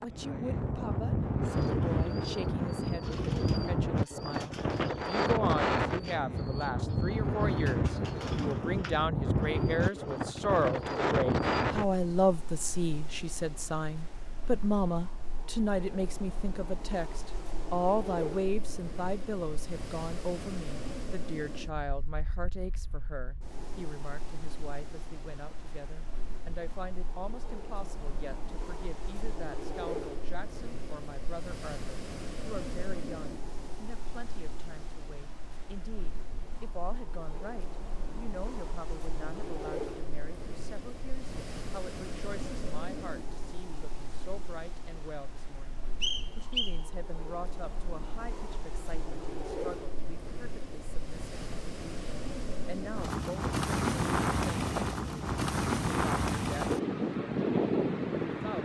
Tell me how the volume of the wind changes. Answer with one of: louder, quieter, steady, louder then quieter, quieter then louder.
quieter then louder.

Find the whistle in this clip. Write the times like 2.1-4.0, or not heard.
46.0-46.8.